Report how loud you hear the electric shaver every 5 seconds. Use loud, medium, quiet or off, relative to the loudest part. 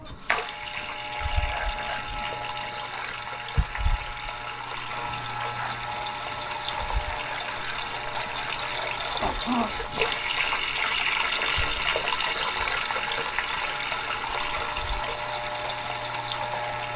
loud, loud, medium, loud.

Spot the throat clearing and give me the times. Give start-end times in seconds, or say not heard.
9.2-9.8.